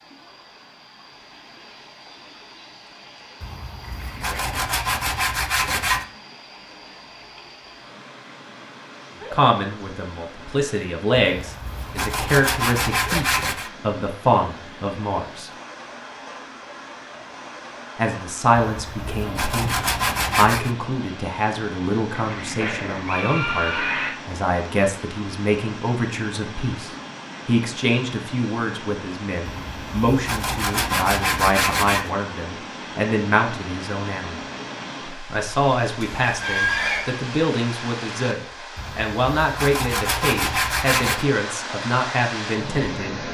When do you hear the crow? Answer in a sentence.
You can't hear the crow here.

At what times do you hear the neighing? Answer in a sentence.
You can hear the neighing from 3.8 to 4.8 s, from 22.1 to 24.1 s and from 36.2 to 37.0 s.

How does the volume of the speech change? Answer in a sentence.
The volume of the speech stays about the same.